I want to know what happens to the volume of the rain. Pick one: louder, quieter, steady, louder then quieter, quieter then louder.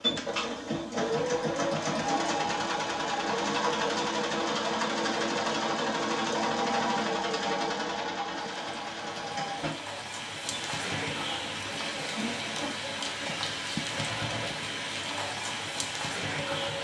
louder.